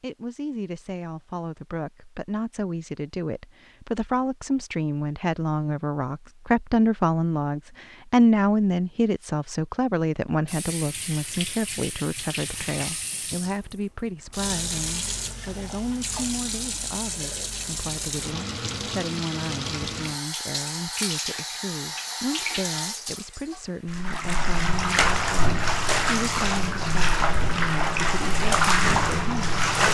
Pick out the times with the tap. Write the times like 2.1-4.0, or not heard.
10.4-29.8.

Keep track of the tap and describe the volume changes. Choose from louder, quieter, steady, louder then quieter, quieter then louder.
louder.